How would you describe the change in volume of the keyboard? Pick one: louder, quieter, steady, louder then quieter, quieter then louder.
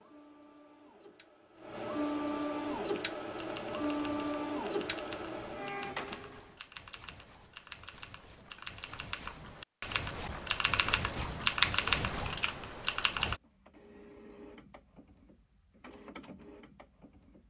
louder.